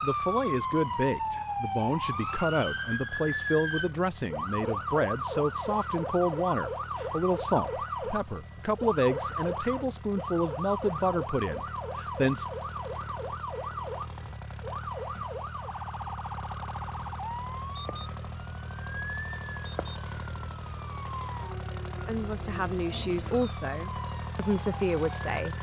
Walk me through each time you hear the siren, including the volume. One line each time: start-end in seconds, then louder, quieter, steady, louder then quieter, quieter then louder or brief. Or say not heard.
0.0-25.4 quieter.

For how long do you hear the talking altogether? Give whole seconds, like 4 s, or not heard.
16 s.